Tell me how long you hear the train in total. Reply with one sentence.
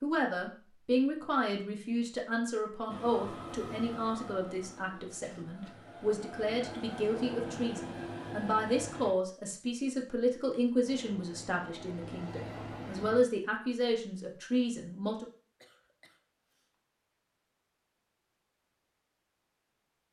You can hear the train for 9 seconds altogether.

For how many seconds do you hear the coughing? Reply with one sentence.
You can hear the coughing for 2 seconds altogether.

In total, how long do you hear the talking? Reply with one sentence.
You can hear the talking for 15 seconds altogether.